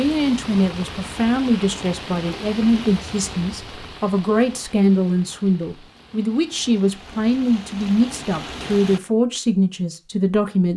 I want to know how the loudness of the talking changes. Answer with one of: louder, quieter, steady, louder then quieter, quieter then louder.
steady.